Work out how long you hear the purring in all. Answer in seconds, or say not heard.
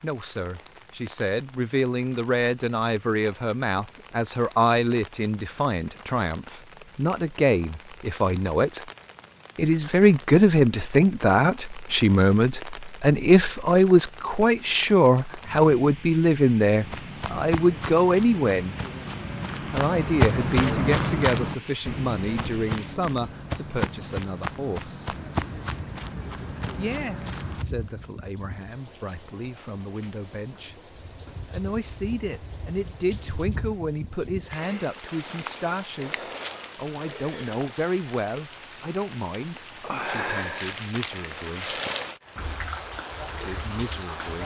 not heard.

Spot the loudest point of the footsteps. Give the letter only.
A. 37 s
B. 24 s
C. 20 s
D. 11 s
C.